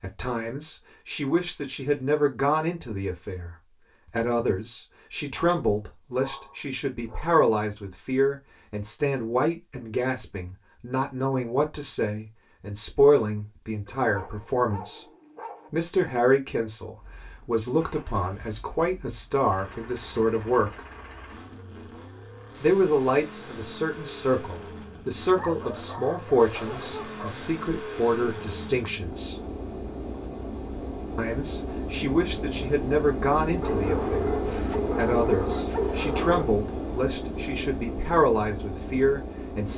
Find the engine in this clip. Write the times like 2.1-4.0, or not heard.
16.9-39.7.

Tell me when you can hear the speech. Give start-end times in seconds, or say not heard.
0.0-15.1, 15.7-20.8, 22.6-29.4, 31.1-34.4, 35.0-39.7.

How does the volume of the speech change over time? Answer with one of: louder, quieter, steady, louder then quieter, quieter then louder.
steady.